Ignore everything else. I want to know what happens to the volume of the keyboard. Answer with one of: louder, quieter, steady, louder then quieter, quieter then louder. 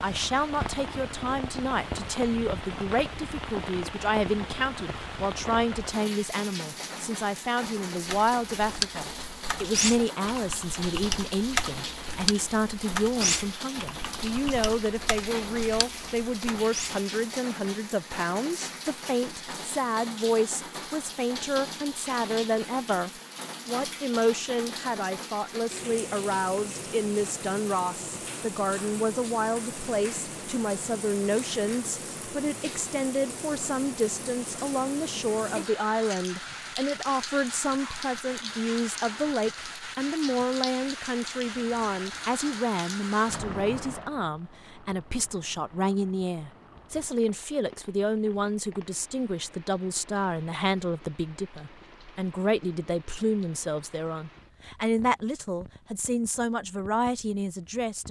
quieter.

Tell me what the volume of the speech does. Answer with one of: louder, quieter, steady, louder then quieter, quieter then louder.
steady.